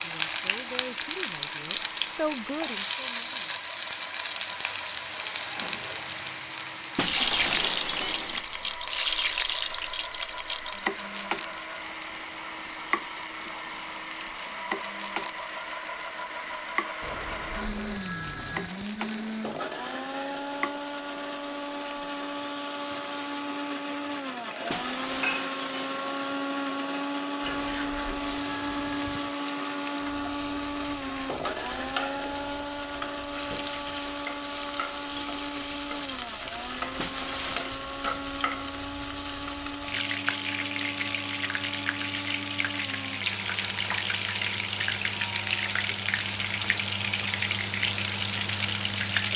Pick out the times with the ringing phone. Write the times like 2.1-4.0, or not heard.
17.0-18.7, 27.4-29.4.